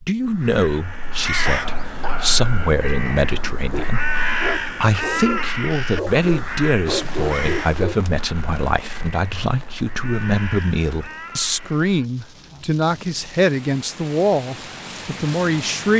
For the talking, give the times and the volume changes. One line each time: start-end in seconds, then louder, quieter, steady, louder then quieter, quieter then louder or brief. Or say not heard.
0.0-15.9 steady.